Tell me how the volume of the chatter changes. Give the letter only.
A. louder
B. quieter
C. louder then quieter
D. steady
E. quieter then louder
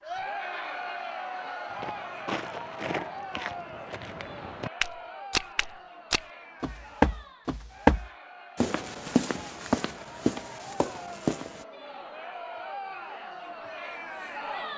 E.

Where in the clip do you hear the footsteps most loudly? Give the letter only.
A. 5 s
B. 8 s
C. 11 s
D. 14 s
B.